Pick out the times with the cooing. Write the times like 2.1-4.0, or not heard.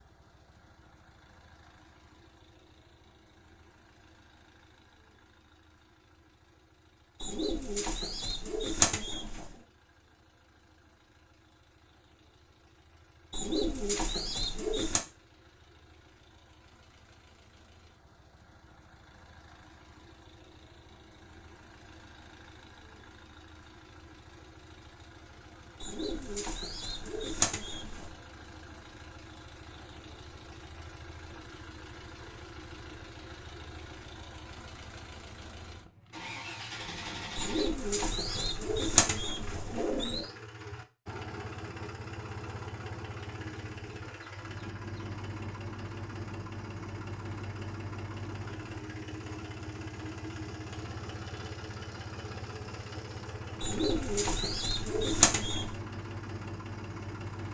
7.2-9.5, 13.3-15.0, 25.8-28.1, 37.4-40.3, 53.6-55.7.